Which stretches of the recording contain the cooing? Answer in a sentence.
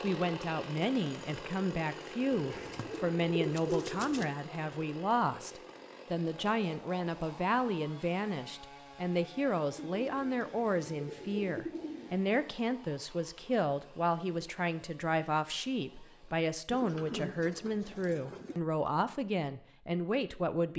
The cooing can be heard from 2.3 to 4.2 s, from 9.8 to 12.2 s and from 16.6 to 18.6 s.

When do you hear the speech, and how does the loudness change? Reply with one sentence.
You can hear the speech from 0.0 to 20.7 s, at a steady volume.